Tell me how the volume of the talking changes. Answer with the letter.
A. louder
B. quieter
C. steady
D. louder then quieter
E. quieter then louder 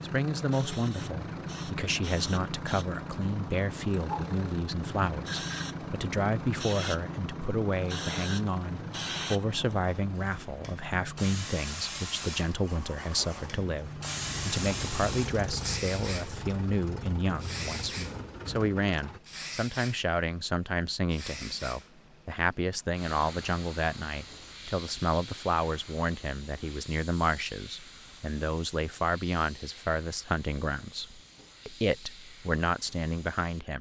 C.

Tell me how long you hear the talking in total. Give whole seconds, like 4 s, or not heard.
34 s.